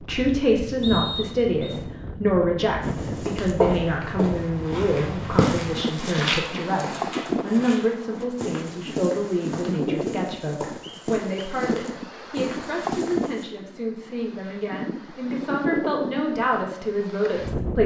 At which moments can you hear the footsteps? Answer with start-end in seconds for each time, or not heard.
2.8-13.4.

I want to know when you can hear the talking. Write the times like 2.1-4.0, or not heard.
0.0-17.8.